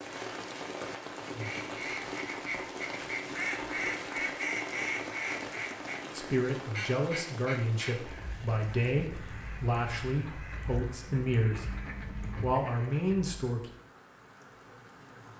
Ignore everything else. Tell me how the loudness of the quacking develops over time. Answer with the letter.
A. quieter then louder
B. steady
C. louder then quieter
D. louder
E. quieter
E.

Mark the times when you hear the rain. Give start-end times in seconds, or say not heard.
0.0-15.3.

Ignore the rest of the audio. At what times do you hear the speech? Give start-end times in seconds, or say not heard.
6.2-13.7.